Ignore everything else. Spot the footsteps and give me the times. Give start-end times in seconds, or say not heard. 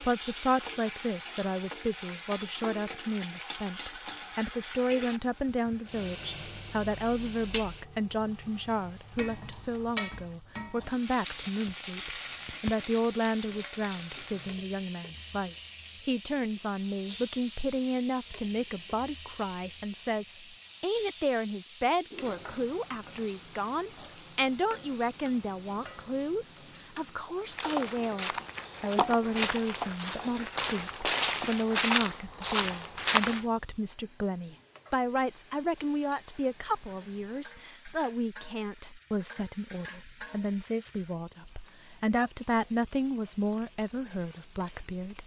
27.4-33.5.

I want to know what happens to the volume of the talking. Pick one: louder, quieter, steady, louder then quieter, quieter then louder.
steady.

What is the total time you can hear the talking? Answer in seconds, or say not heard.
45 s.